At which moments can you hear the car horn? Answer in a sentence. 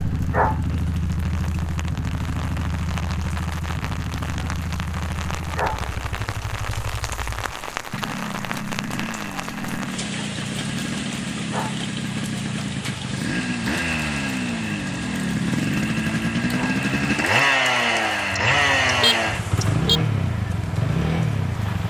You can hear the car horn from 18.3 to 20.0 s.